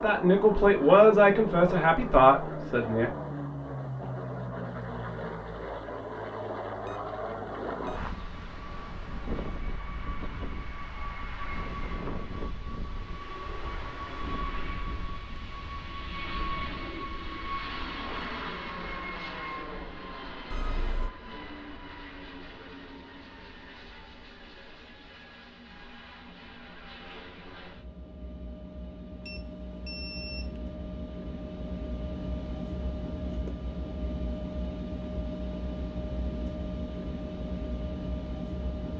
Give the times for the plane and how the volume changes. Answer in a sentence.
You can hear the plane from 0.0 to 38.9 s, getting quieter then louder.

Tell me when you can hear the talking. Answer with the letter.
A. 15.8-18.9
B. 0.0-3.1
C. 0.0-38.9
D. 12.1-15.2
B.